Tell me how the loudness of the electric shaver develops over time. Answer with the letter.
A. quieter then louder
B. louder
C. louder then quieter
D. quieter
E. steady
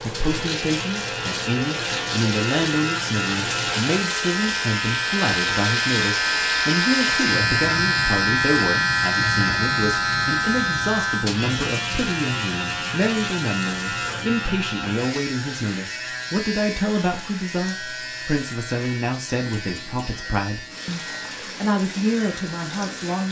C.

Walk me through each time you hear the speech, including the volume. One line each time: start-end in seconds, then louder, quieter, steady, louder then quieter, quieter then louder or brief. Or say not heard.
0.0-23.2 steady.